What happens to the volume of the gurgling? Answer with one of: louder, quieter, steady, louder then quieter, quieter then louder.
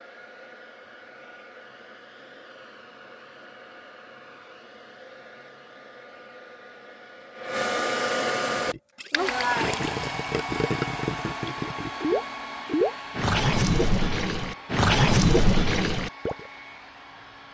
louder.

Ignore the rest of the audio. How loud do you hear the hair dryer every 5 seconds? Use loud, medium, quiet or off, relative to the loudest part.
quiet, loud, medium, quiet.